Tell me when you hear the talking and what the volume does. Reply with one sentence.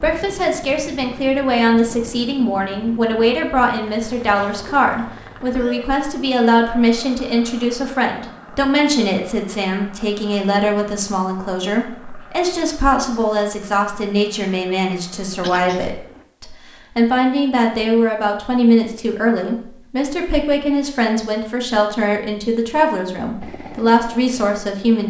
You can hear the talking from 0.0 to 25.0 s, at a steady volume.